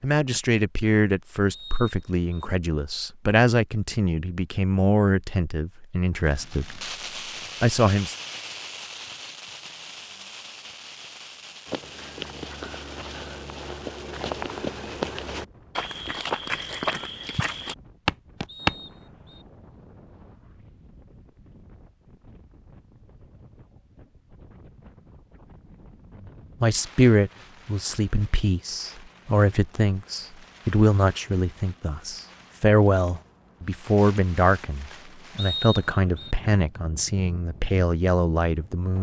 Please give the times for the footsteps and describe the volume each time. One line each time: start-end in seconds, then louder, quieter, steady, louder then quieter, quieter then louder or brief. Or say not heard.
11.7-18.8 louder.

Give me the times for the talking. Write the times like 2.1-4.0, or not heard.
0.0-6.8, 7.6-8.2, 26.6-38.9.